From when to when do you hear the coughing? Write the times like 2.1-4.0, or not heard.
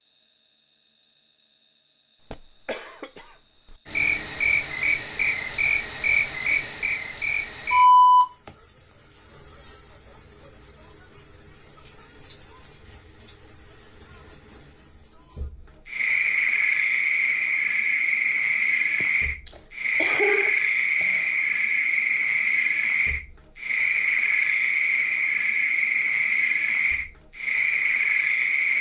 2.2-3.8, 19.0-21.2.